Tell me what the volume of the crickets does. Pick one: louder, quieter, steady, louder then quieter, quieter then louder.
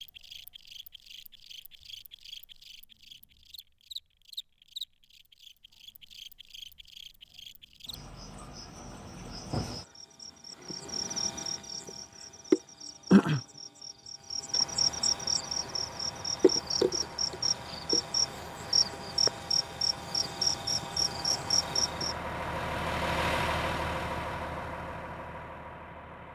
louder.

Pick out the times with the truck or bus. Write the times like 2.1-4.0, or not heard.
14.4-26.3.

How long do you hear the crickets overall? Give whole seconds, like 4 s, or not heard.
22 s.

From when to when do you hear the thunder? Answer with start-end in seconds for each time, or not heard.
not heard.